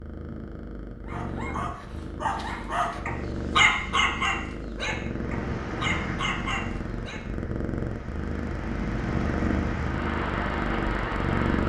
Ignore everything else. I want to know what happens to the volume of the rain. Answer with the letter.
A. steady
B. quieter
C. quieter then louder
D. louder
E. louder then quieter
C.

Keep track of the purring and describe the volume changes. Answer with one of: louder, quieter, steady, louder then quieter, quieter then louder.
louder.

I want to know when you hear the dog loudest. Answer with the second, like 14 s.
4 s.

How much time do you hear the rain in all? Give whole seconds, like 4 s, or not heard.
7 s.